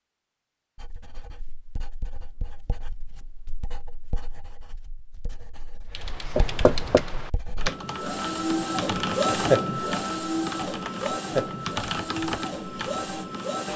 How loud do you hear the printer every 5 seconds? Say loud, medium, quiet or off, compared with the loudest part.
off, loud, medium.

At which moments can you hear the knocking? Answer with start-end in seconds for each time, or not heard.
6.3-7.0.